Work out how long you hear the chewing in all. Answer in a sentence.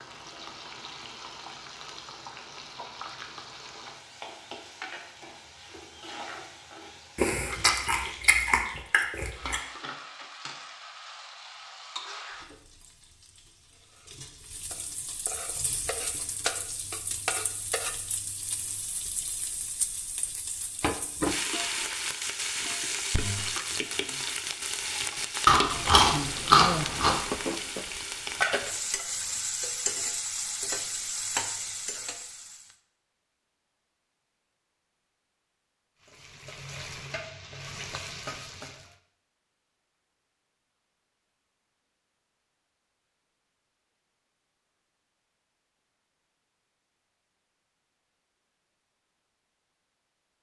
The chewing can be heard for 4 seconds in total.